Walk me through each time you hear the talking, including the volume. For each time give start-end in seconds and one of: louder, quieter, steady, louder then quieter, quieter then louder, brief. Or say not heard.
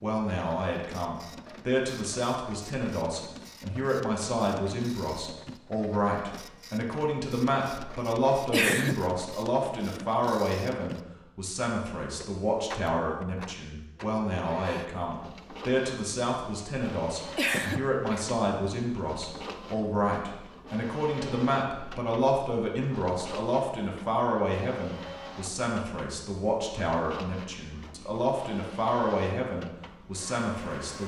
0.0-31.0 steady.